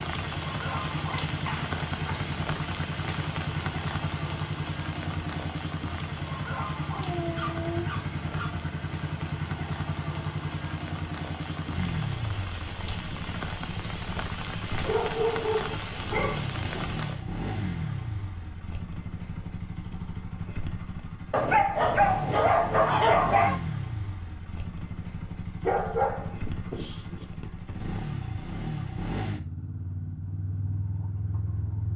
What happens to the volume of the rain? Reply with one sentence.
The loudness of the rain goes down, then up.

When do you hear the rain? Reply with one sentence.
The rain can be heard from 0.0 to 17.2 s.